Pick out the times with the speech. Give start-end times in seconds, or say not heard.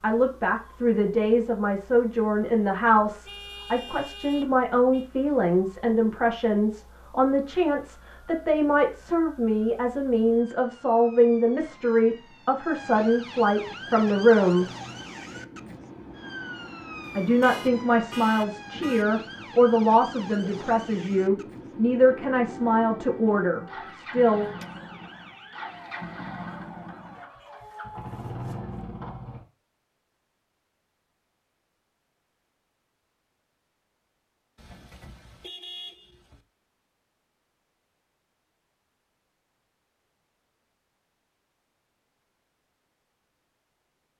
0.0-14.7, 17.1-24.4.